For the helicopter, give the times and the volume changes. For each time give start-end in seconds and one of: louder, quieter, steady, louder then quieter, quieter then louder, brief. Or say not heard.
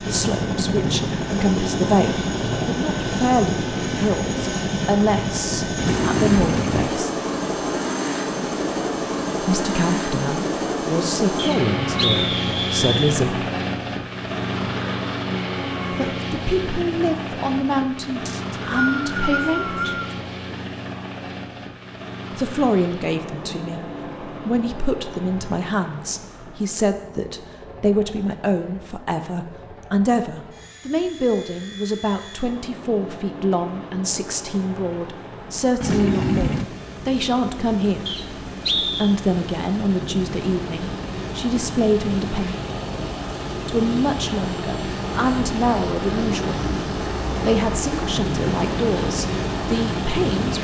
0.0-50.5 quieter then louder.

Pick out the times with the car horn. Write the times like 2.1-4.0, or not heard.
5.8-6.9, 35.8-36.7.